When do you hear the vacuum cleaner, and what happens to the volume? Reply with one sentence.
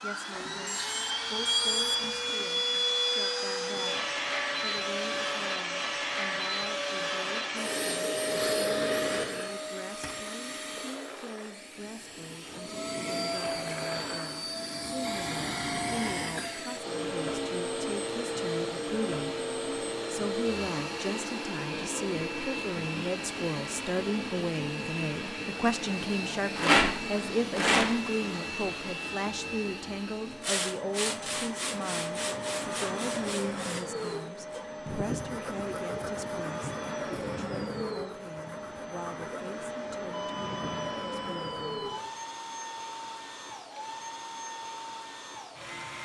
You can hear the vacuum cleaner from 0.0 to 46.0 s, getting quieter.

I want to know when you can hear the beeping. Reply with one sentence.
You can hear the beeping from 0.3 to 2.4 s and from 40.1 to 42.0 s.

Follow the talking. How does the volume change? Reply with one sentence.
The loudness of the talking goes up, then down.